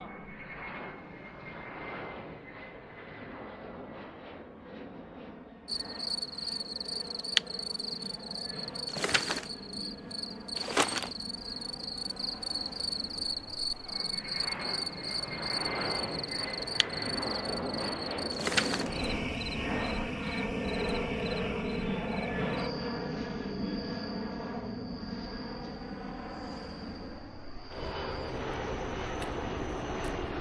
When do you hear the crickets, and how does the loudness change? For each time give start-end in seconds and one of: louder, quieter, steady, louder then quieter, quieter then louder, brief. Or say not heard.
5.7-30.3 quieter.